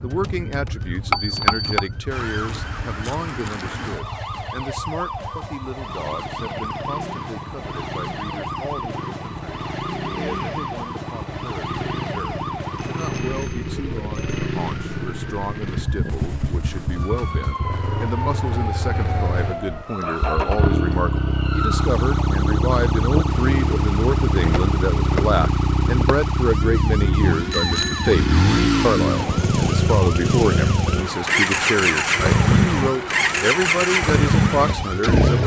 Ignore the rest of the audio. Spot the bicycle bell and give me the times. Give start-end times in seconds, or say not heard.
1.1-1.9, 12.8-14.4, 27.5-28.1.